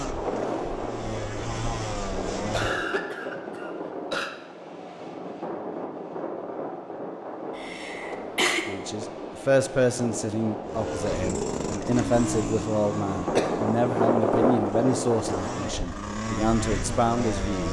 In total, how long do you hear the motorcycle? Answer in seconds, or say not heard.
10 s.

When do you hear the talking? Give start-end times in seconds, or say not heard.
8.7-17.6.